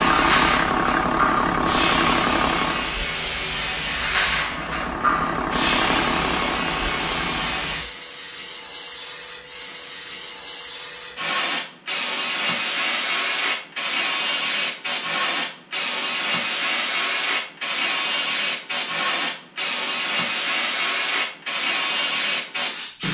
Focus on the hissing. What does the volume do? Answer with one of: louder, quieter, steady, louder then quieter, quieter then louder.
steady.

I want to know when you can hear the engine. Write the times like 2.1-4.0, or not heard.
0.0-3.0, 4.3-7.8.